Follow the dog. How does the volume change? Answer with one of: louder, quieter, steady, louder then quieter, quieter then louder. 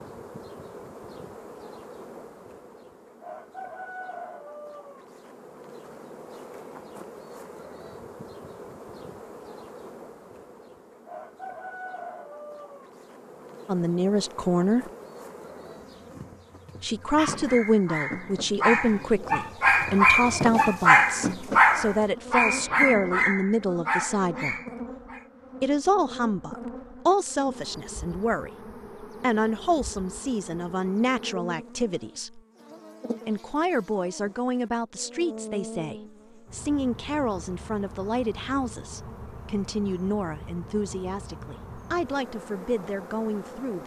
louder then quieter.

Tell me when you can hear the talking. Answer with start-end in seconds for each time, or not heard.
13.7-14.8, 16.8-24.6, 25.6-32.4, 33.2-43.8.